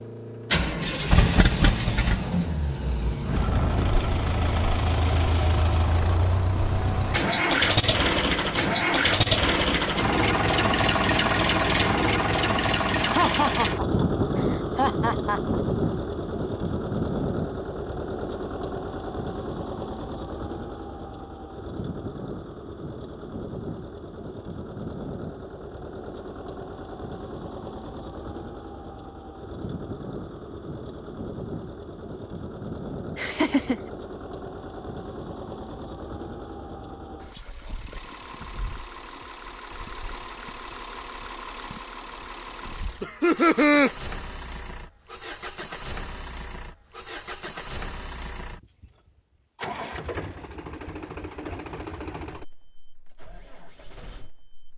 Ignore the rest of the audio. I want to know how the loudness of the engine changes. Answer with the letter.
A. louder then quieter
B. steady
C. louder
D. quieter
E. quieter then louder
D.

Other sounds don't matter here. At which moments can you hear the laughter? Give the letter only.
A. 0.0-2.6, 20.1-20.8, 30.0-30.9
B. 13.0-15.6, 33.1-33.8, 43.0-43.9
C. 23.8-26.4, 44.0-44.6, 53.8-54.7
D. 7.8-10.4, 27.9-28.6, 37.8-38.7
B.